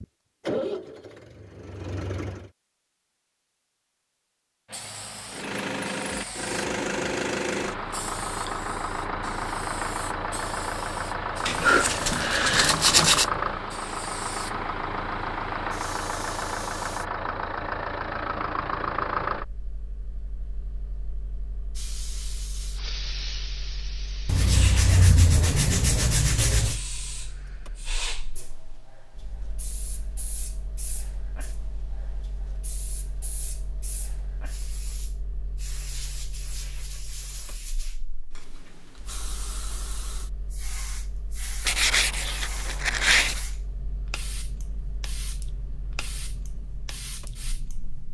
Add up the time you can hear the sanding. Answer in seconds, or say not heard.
6 s.